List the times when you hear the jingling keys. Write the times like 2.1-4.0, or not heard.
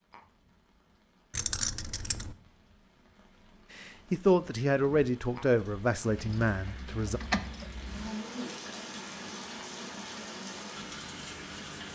1.4-2.4, 6.2-8.1.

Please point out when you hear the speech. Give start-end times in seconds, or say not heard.
3.8-7.2.